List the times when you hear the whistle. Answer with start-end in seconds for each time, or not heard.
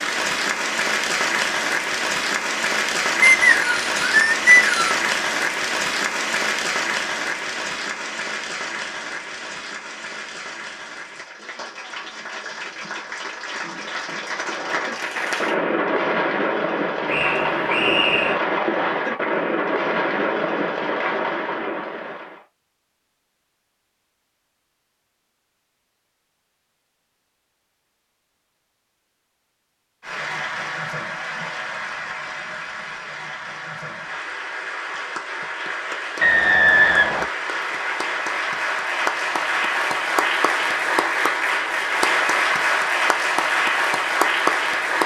3.2-5.0, 17.1-18.4, 36.2-37.2.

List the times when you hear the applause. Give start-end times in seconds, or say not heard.
0.0-15.6, 30.0-45.0.